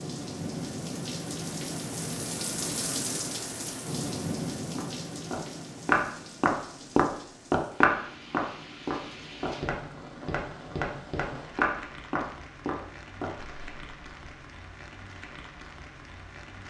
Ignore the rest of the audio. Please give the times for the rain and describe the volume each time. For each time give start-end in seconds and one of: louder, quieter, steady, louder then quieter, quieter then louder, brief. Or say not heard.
0.0-16.6 quieter.